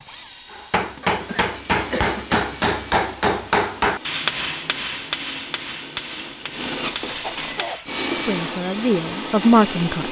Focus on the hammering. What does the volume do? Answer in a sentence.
The volume of the hammering goes down.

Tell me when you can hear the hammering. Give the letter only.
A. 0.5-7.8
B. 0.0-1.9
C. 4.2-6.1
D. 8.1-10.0
A.